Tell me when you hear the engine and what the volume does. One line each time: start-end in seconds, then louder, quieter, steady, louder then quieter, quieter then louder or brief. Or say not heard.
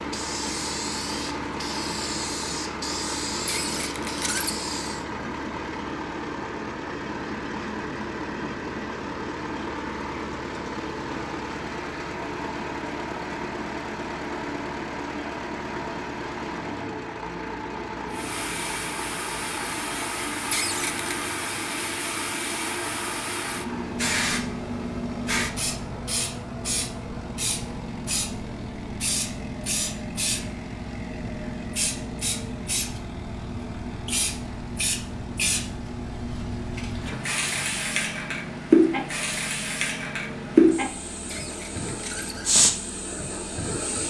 0.0-44.0 quieter.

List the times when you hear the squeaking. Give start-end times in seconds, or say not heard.
3.5-4.6, 20.5-21.1, 41.2-42.5.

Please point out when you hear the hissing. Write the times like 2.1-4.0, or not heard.
0.0-5.0, 18.1-44.0.